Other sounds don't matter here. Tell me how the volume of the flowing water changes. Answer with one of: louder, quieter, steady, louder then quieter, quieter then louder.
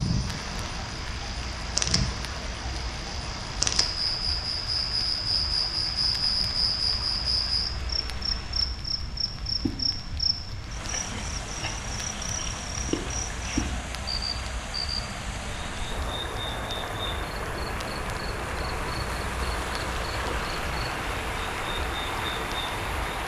louder.